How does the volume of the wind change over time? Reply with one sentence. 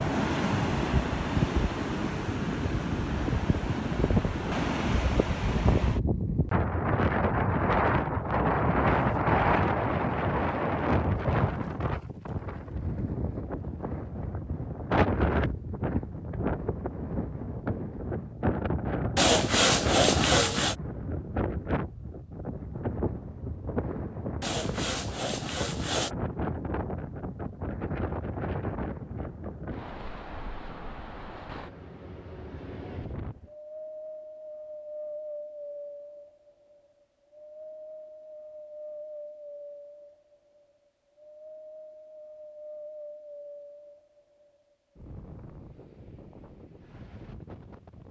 The volume of the wind goes down.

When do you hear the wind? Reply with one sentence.
The wind can be heard from 0.0 to 48.0 s.